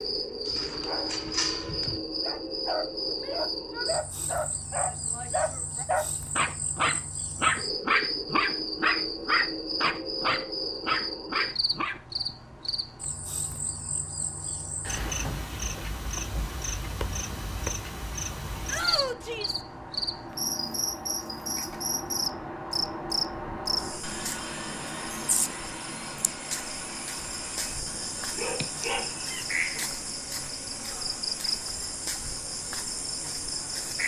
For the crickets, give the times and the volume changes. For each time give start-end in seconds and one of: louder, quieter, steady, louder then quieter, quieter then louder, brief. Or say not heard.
0.0-34.0 steady.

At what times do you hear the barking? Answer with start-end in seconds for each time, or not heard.
0.5-12.0, 28.2-29.8.